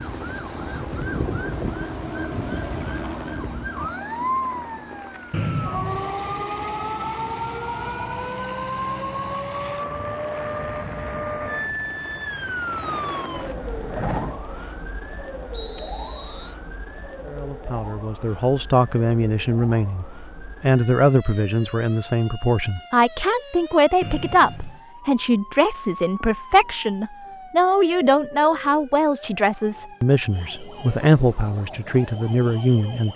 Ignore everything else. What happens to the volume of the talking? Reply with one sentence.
The volume of the talking stays about the same.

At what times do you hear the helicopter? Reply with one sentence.
The helicopter can be heard from 0.0 to 14.4 s.